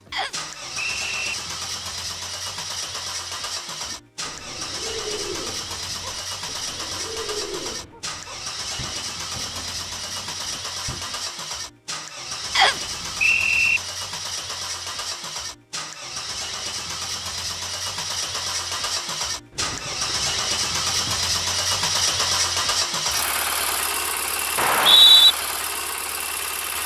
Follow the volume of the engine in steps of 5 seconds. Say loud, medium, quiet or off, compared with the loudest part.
medium, medium, medium, medium, loud, medium.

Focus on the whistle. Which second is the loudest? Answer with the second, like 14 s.
25 s.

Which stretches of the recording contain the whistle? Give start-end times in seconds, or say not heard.
0.1-1.4, 12.6-13.8, 24.6-25.4.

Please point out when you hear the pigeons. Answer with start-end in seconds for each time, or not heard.
3.8-11.2, 19.5-21.2.